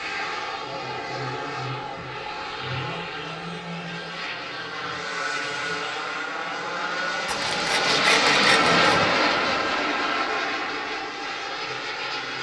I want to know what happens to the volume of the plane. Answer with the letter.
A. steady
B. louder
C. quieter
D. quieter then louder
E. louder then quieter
E.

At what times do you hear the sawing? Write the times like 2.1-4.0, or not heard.
7.2-8.8.